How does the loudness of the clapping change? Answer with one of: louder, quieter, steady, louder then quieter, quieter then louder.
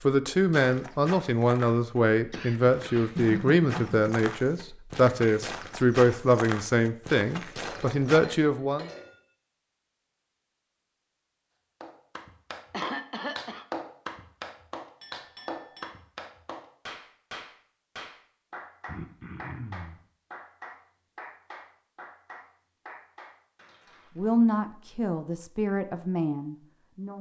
quieter.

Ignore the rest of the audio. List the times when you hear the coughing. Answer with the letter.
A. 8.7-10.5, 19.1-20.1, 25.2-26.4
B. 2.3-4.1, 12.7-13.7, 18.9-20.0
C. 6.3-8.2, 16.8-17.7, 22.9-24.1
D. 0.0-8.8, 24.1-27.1
B.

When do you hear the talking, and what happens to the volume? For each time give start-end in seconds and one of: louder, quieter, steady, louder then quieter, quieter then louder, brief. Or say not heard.
0.0-8.8 steady
24.1-27.1 brief.